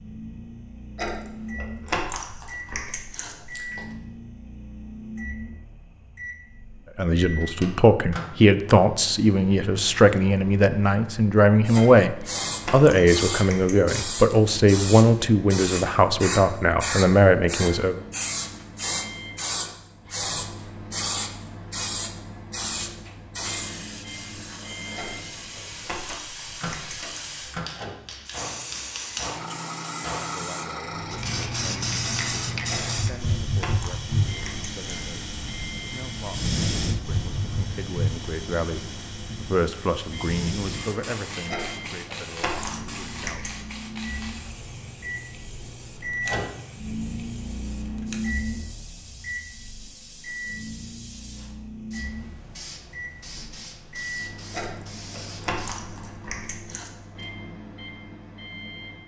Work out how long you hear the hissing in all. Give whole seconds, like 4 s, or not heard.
44 s.